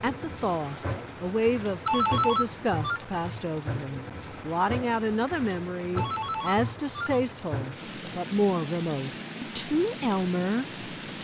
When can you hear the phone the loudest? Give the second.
2 s.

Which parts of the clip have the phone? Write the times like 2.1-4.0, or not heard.
1.9-3.0, 6.0-7.2.